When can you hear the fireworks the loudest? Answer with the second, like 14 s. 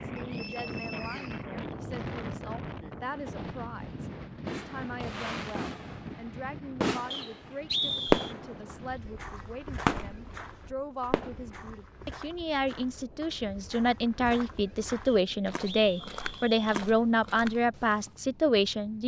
8 s.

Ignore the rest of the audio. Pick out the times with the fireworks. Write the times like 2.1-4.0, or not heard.
3.8-8.8, 9.7-10.2, 11.1-11.5.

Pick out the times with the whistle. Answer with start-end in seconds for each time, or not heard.
0.1-1.4, 7.1-8.3, 15.1-16.6.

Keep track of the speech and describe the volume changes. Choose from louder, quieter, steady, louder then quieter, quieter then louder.
louder.